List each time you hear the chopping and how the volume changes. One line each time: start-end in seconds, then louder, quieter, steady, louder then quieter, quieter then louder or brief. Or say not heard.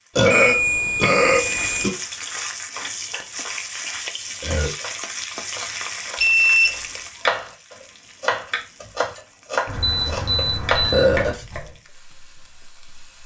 2.3-11.7 louder.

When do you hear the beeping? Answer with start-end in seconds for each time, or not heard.
0.3-1.9, 6.2-6.8, 9.8-11.0.